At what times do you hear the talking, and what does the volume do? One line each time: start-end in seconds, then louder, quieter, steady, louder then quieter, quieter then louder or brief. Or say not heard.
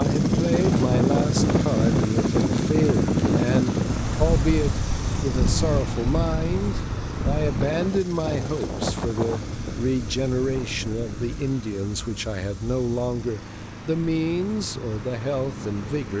0.0-16.1 steady.